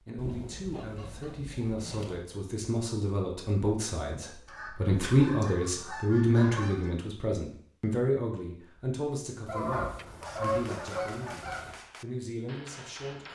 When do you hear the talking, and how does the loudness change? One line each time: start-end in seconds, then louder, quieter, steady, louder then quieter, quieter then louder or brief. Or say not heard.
0.0-13.2 louder then quieter.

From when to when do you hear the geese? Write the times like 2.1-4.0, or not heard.
0.1-2.2, 4.5-6.9, 9.4-11.8.